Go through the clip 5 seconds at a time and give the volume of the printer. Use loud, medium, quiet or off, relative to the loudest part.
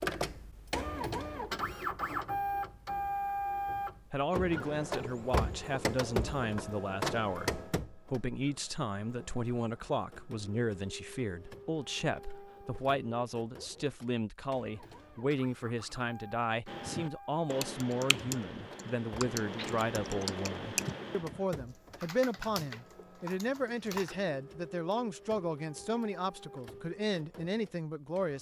loud, loud, quiet, quiet, quiet, quiet.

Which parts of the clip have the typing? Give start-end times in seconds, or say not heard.
16.6-24.1.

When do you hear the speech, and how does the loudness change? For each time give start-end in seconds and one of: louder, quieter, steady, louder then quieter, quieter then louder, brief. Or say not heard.
4.1-28.3 steady.